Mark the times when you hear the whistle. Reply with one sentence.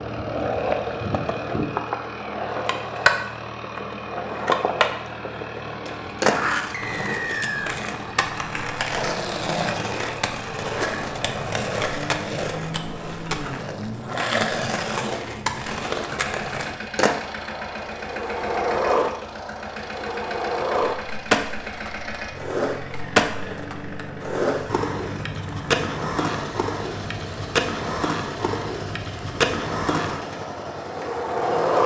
The whistle can be heard from 6.7 to 7.8 s.